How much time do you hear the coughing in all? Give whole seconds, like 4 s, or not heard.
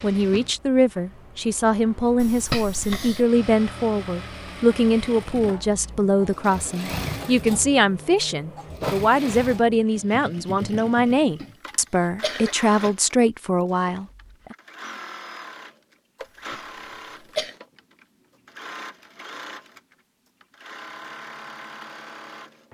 4 s.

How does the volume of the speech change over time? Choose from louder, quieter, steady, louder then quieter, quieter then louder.
steady.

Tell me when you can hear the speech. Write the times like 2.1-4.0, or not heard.
0.0-14.6.